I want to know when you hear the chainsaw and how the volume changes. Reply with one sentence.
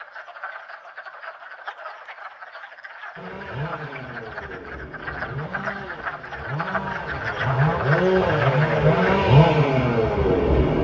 The chainsaw can be heard from 3.1 to 10.7 s, getting louder.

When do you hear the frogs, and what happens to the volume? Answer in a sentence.
The frogs can be heard from 0.0 to 9.2 s, getting louder.